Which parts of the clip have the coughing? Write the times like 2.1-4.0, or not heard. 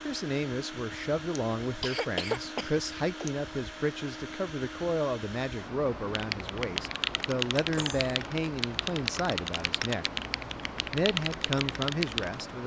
1.4-3.3, 7.7-8.2.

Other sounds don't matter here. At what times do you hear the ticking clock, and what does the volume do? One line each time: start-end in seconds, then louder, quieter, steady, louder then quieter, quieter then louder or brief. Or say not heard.
not heard.